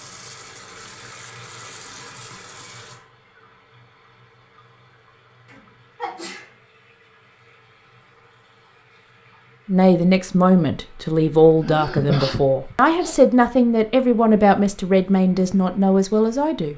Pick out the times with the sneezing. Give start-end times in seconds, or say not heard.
5.5-6.5, 11.6-13.2.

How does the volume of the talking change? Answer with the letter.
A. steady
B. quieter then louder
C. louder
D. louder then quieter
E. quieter
A.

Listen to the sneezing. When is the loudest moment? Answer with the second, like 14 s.
12 s.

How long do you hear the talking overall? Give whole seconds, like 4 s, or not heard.
7 s.